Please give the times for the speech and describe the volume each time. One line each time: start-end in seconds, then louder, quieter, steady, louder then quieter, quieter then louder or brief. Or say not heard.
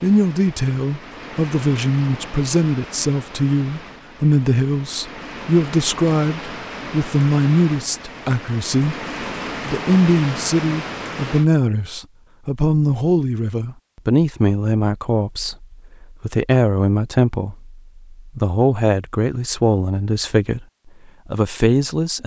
0.0-8.9 steady
9.6-20.6 steady
21.2-22.2 brief.